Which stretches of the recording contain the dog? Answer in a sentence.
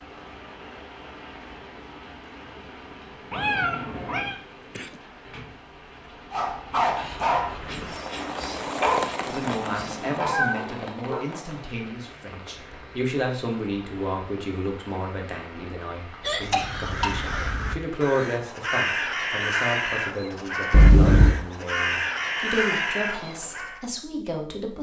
You can hear the dog from 6.3 to 11.2 s.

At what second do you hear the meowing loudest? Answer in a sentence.
The loudest moment of the meowing is at 21 seconds.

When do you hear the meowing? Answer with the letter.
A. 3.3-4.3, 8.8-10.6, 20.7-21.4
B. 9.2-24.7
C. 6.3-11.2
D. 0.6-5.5
A.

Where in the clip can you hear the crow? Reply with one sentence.
The crow can be heard from 16.4 to 23.9 s.